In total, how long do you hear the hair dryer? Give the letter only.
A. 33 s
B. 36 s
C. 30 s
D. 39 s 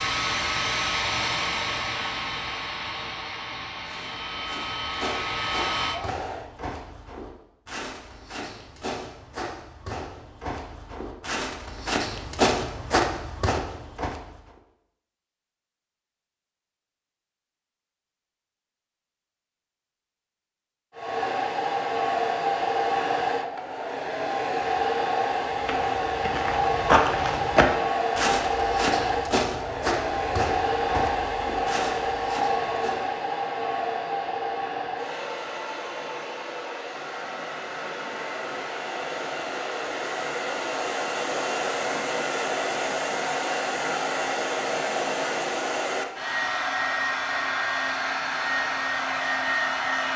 B.